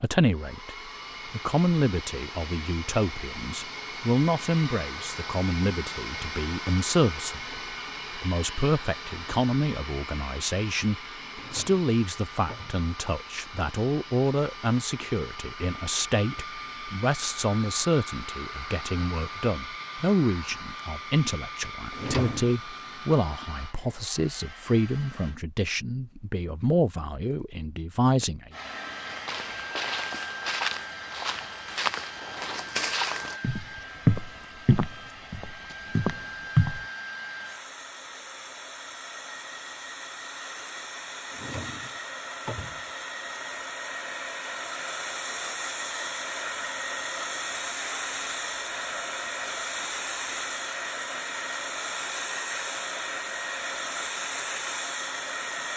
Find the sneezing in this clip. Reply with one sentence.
You can't hear the sneezing here.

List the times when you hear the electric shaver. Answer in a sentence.
The electric shaver can't be heard in this clip.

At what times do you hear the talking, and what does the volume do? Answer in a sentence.
You can hear the talking from 0.0 to 28.5 s, at a steady volume.